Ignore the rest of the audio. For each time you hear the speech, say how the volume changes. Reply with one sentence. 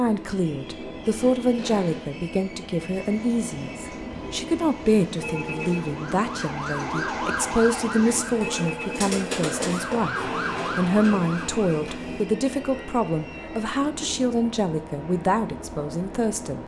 The speech can be heard from 0.0 to 16.6 s, at a steady volume.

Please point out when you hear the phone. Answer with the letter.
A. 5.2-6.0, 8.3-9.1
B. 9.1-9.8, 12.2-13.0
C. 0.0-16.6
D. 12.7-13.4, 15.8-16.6
A.